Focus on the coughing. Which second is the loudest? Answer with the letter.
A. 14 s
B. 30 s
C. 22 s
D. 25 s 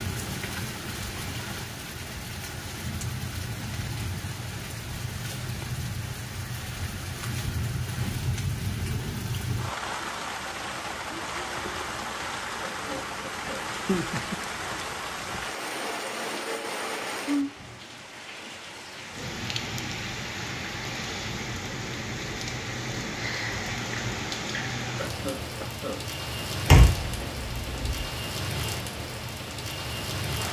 D.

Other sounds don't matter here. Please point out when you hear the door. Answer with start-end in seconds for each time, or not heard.
26.6-28.1.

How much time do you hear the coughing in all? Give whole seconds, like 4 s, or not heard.
2 s.